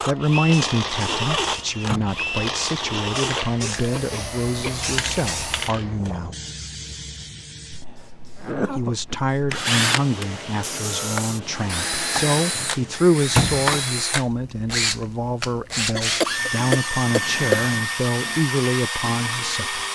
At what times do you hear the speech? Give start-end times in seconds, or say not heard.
0.1-6.3, 8.7-19.9.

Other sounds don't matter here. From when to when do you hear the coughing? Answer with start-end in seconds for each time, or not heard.
3.4-4.8, 7.3-9.2, 15.9-17.8.